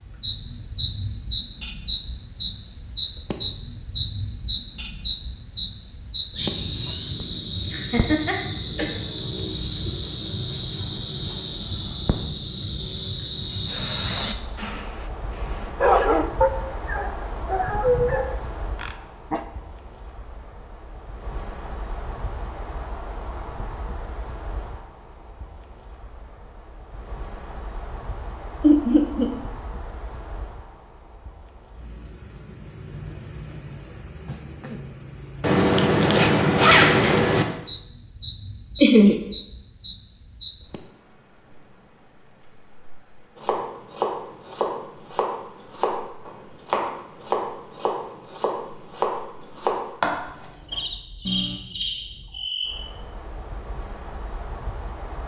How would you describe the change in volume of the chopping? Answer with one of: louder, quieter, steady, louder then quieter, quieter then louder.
steady.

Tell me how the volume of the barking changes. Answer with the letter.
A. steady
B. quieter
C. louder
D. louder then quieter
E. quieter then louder
D.